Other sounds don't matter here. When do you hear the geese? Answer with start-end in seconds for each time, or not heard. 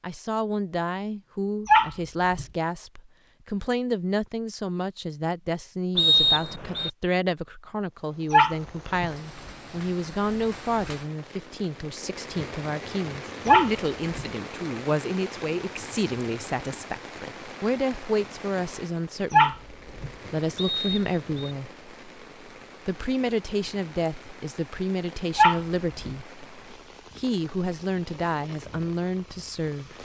not heard.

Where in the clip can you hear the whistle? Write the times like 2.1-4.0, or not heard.
6.0-6.9, 20.6-21.6.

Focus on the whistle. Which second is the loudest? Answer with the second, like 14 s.
6 s.